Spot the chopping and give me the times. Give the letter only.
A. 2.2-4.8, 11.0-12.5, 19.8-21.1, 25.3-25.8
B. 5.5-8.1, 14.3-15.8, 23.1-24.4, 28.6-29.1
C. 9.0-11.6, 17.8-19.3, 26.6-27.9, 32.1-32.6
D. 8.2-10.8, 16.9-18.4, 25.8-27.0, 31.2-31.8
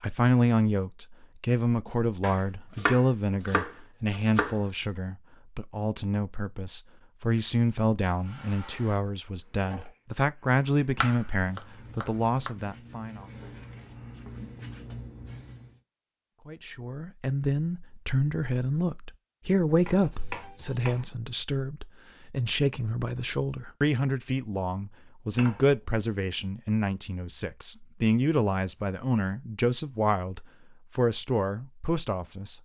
A.